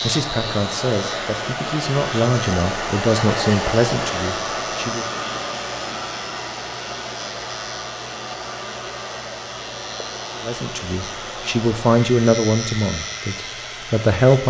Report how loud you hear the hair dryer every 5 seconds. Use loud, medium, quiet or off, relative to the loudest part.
loud, medium, medium.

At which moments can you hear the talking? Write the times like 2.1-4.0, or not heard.
0.0-5.0, 10.4-14.4.